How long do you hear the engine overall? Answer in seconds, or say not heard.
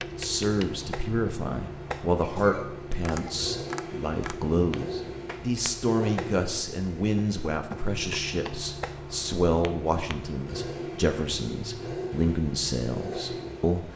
14 s.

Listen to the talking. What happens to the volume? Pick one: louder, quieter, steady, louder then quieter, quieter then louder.
steady.